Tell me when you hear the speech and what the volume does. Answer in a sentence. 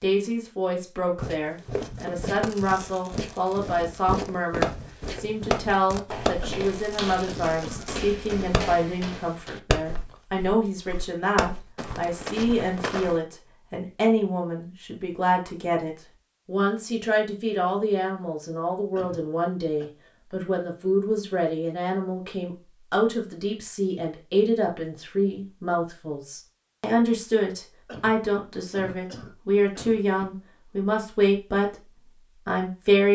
You can hear the speech from 0.0 to 33.1 s, at a steady volume.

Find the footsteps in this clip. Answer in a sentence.
You can hear the footsteps from 1.1 to 13.2 s.